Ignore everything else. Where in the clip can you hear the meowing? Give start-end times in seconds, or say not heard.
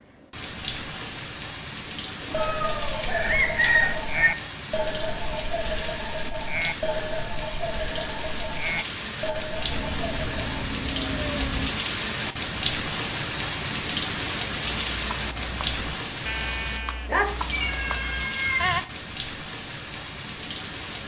2.2-3.1, 9.7-11.7, 17.5-18.8.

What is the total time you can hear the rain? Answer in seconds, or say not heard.
21 s.